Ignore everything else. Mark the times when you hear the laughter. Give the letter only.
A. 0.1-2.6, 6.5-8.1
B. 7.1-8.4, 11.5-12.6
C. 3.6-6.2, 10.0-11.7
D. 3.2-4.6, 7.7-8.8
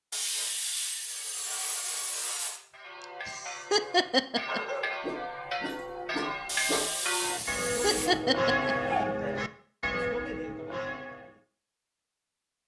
D.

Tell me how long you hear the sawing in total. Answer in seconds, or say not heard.
4 s.